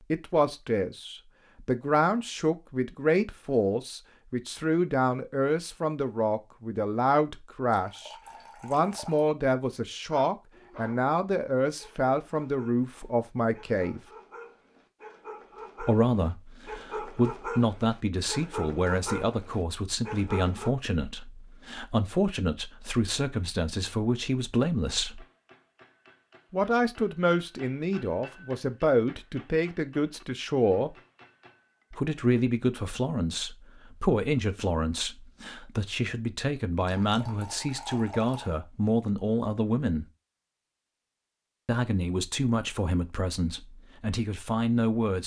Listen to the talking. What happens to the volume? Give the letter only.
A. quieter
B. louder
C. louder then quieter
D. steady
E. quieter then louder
D.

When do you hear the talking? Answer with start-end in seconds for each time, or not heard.
0.1-14.0, 15.8-25.2, 26.5-30.9, 31.9-40.0, 41.6-45.2.